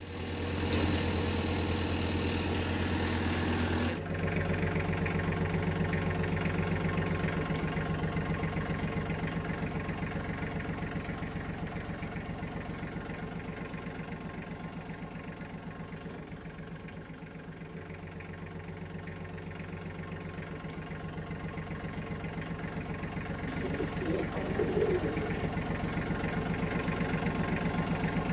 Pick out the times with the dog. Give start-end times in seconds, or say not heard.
not heard.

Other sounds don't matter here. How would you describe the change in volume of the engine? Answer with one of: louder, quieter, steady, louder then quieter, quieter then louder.
quieter then louder.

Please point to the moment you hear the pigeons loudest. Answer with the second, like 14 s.
25 s.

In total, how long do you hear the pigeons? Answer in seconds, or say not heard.
2 s.